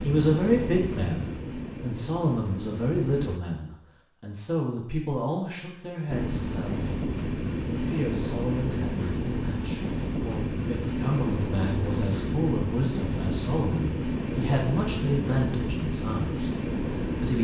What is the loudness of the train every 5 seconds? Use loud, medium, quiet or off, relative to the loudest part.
medium, loud, loud, loud.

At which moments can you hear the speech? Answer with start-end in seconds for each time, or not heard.
0.0-6.9, 7.7-17.3.